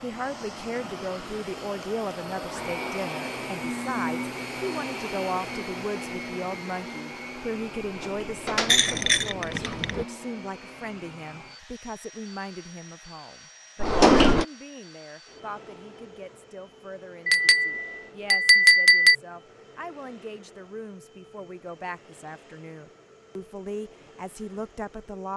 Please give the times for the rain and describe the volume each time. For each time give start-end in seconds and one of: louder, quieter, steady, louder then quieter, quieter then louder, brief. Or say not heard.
not heard.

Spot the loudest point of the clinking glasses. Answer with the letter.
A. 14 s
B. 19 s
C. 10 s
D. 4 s
B.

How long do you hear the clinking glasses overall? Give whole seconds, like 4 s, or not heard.
3 s.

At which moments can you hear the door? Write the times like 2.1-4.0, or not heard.
7.8-9.9, 13.8-14.4.